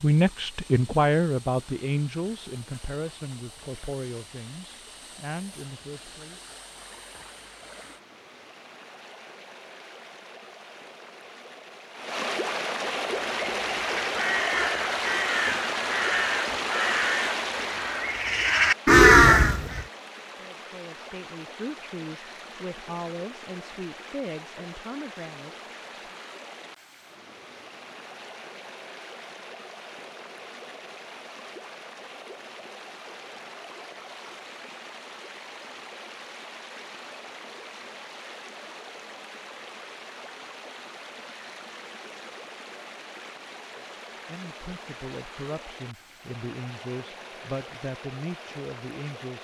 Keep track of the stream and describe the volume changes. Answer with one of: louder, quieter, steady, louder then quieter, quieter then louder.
louder then quieter.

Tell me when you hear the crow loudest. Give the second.
19 s.